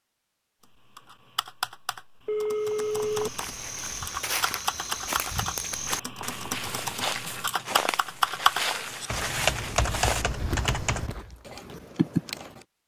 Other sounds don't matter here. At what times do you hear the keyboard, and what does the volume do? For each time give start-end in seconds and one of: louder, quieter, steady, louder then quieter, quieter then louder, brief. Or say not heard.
0.7-12.6 louder.